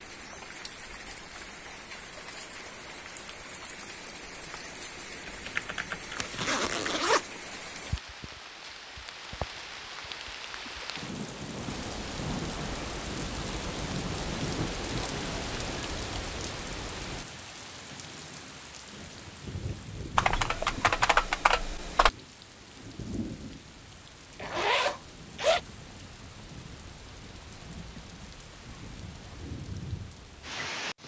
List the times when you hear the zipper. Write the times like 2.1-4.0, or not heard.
6.2-7.2, 24.4-25.6.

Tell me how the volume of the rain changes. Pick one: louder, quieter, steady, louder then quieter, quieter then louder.
louder then quieter.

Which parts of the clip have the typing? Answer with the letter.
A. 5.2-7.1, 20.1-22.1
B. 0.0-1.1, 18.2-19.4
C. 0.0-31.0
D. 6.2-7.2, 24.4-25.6
A.